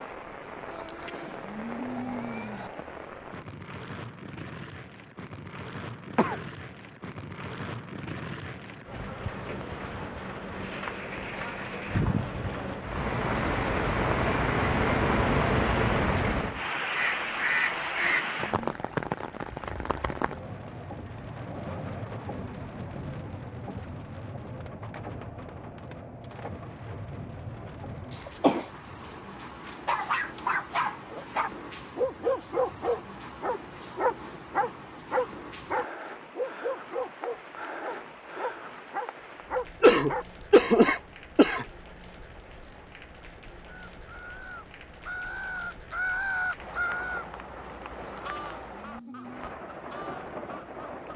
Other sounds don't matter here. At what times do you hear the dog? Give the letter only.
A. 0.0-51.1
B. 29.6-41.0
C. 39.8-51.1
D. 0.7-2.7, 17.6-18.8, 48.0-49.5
B.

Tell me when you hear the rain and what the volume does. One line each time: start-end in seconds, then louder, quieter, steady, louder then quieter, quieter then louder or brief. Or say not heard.
0.0-51.1 louder then quieter.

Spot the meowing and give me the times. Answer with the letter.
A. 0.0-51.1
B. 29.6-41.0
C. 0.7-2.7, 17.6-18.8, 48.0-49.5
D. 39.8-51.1
C.